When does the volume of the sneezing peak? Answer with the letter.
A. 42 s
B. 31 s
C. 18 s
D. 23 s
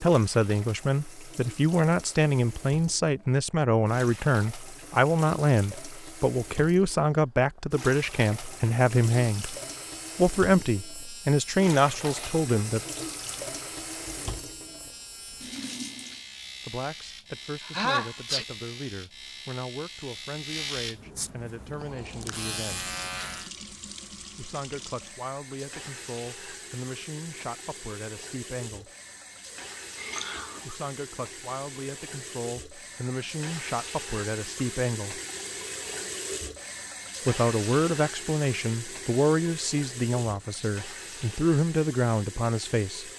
C.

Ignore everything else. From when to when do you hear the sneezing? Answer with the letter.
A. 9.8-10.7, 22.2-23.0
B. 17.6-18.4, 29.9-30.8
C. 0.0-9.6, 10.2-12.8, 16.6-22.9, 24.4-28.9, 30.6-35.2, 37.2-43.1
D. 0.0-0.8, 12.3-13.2
B.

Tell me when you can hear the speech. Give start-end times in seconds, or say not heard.
0.0-9.6, 10.2-12.8, 16.6-22.9, 24.4-28.9, 30.6-35.2, 37.2-43.1.